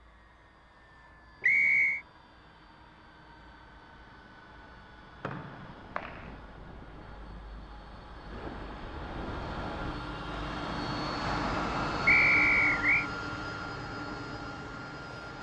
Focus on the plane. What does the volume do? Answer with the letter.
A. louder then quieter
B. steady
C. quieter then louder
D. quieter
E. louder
E.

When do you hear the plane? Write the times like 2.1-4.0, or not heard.
0.0-15.3.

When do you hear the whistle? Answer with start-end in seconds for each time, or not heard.
1.4-2.0, 5.2-6.3, 12.1-13.1.